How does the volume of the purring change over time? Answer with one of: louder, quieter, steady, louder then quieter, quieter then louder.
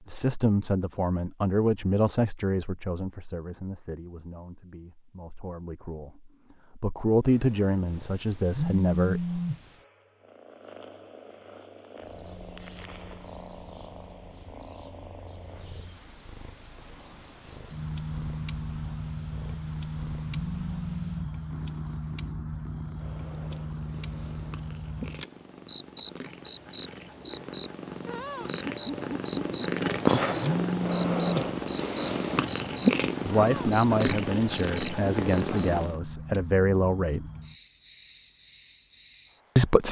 louder.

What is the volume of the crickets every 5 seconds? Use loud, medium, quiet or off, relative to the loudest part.
off, off, loud, loud, loud, loud, loud, medium.